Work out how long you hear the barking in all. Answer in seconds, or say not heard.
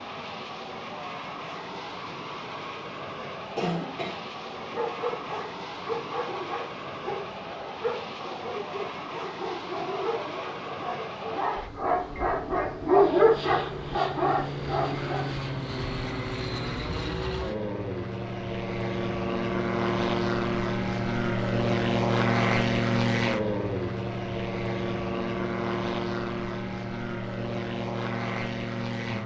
11 s.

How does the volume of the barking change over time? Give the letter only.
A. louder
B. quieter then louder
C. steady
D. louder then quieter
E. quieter
A.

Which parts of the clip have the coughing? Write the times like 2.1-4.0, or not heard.
3.5-4.2.